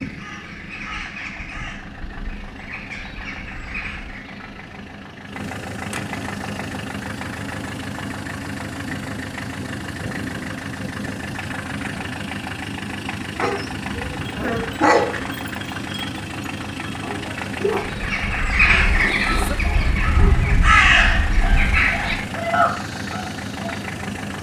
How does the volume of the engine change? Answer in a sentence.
The volume of the engine goes up.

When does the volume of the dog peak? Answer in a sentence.
The loudest moment of the dog is at 15 seconds.